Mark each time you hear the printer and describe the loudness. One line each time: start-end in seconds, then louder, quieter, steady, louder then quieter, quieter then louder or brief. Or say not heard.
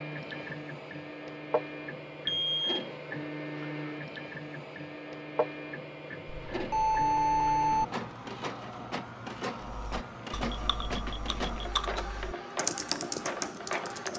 0.0-14.1 steady.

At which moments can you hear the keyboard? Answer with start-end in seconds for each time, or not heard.
9.7-14.1.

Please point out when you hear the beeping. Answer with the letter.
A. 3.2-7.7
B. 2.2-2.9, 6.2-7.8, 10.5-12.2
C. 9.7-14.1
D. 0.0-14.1
B.